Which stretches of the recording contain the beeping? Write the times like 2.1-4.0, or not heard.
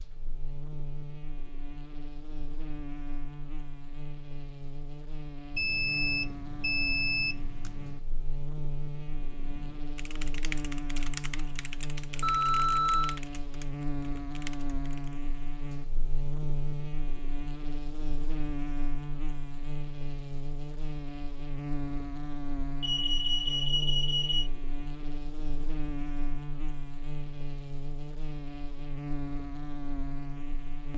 5.5-8.0, 12.2-13.2, 22.8-24.5.